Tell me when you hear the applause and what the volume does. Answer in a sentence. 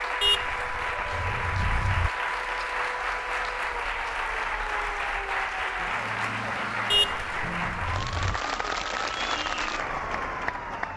You can hear the applause from 0.0 to 10.9 s, at a steady volume.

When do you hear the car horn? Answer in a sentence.
You can hear the car horn from 0.2 to 2.1 s and from 6.9 to 8.4 s.